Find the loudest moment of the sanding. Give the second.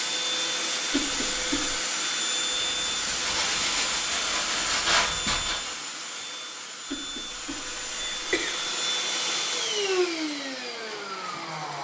5 s.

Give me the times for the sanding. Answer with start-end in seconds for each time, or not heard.
2.5-5.8.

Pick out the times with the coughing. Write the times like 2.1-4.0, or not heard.
0.9-1.8, 6.9-8.7.